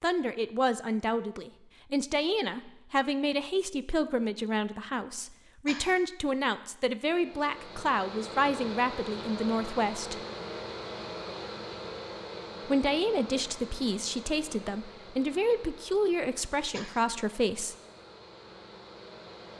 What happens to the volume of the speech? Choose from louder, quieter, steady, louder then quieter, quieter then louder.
steady.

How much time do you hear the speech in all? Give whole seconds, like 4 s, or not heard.
15 s.